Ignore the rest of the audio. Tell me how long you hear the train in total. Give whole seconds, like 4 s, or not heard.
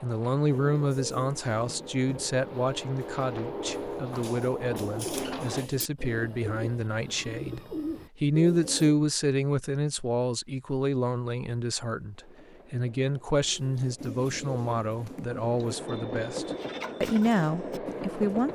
12 s.